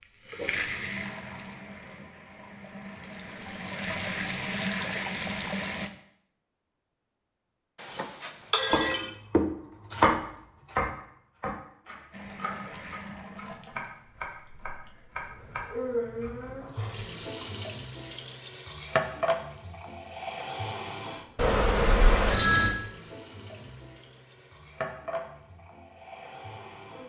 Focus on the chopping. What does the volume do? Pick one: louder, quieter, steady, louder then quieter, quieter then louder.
quieter.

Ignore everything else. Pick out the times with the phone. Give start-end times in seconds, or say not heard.
7.8-9.1, 21.4-22.8.